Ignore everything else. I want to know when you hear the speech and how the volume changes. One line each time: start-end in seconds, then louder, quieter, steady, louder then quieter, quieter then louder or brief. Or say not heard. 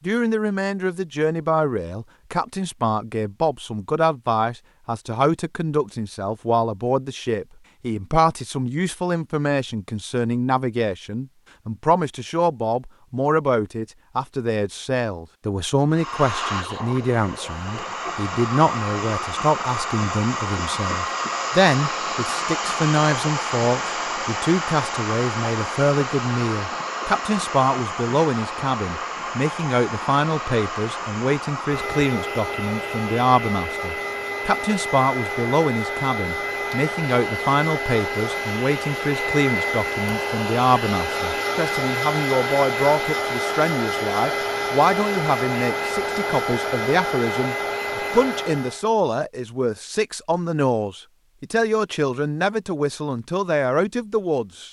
0.0-54.6 steady.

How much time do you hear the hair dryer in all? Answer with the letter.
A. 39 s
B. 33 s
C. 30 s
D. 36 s
B.